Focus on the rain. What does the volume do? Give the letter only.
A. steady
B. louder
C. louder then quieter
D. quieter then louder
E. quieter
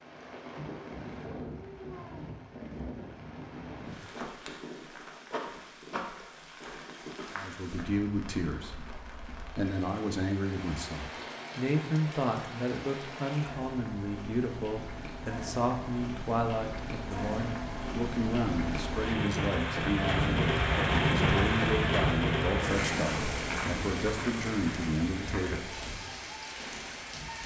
B.